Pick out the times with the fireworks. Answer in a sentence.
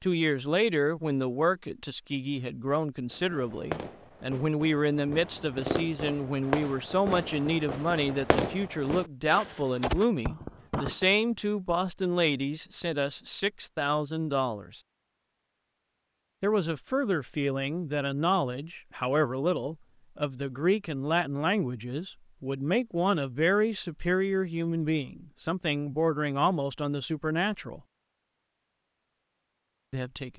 You can hear the fireworks from 3.1 to 11.2 s.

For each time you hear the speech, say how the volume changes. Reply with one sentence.
You can hear the speech from 0.0 to 14.8 s, at a steady volume; from 16.4 to 27.8 s, at a steady volume; and briefly from 29.9 to 30.3 s.